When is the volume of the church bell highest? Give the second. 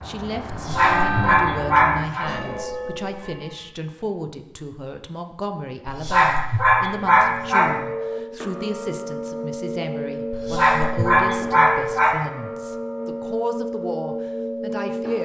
1 s.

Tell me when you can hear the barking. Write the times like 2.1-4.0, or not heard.
0.5-2.2, 5.8-7.8, 10.3-12.2.